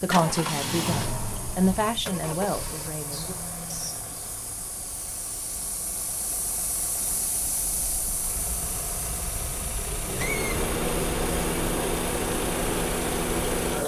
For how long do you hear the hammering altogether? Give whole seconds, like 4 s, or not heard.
not heard.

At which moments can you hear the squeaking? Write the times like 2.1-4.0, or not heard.
3.1-4.0, 10.2-10.6.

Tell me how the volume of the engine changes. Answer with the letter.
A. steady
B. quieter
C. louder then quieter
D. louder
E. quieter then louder
E.